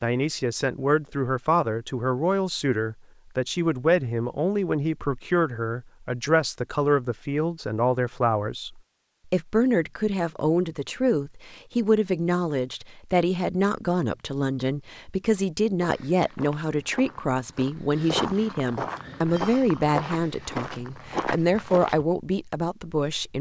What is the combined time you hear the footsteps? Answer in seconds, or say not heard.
6 s.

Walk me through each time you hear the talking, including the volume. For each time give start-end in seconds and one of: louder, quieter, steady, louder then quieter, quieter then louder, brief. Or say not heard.
0.0-23.3 steady.